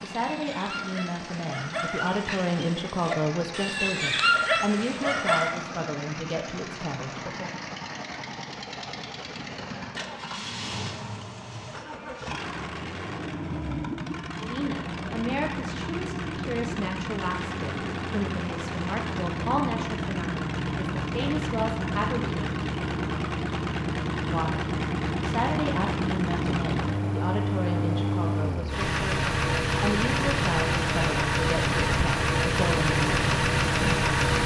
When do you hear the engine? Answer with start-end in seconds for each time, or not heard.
0.0-34.4.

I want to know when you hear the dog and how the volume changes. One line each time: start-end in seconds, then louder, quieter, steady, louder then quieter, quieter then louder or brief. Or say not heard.
0.1-5.5 louder.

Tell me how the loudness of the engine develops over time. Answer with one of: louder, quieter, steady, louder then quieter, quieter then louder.
louder.